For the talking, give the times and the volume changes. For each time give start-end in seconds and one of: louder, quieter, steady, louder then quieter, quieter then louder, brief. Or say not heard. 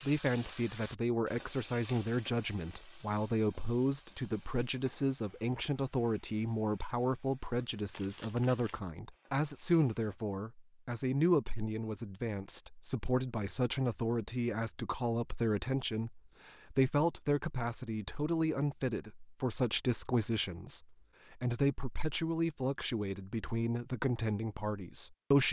0.0-25.4 steady.